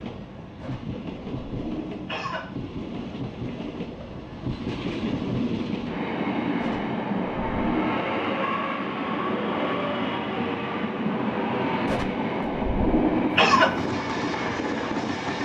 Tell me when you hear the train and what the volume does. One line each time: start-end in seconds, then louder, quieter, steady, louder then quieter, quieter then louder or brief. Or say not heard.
0.0-15.3 louder.